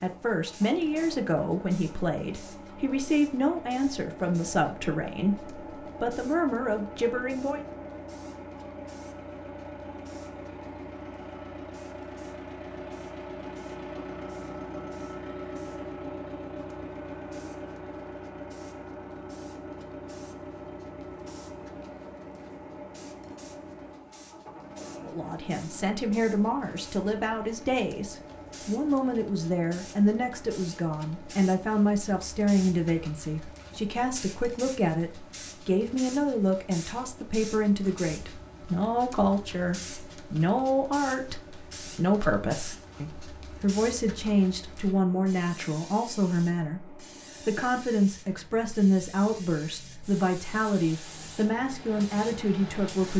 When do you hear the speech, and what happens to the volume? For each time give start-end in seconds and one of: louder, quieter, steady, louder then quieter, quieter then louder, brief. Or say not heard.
0.0-7.7 steady
25.0-53.1 steady.